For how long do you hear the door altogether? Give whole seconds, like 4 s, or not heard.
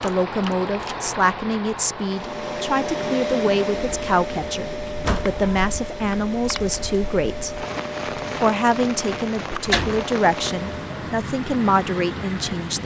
2 s.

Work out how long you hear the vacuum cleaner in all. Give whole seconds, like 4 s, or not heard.
9 s.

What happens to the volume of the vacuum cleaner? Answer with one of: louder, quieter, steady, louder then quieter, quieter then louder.
quieter.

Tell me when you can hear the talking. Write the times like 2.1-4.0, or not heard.
0.0-7.5, 8.3-12.8.